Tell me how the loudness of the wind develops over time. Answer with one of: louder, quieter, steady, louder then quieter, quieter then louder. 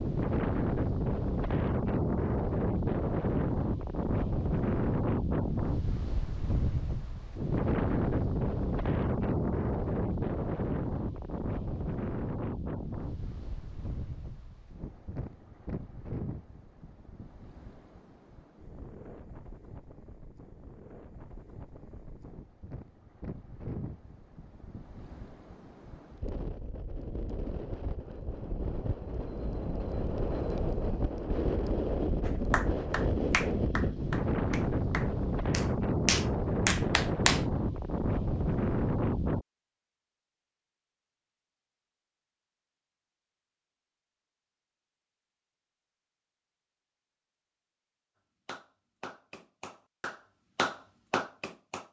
quieter then louder.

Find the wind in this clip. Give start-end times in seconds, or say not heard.
0.0-39.5.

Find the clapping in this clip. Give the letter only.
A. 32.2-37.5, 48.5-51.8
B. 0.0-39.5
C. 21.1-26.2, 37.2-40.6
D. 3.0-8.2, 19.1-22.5
A.